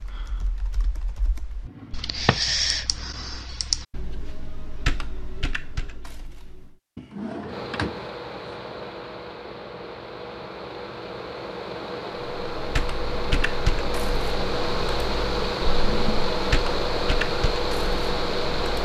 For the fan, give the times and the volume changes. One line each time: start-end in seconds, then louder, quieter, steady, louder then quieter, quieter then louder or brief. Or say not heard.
7.5-18.7 louder.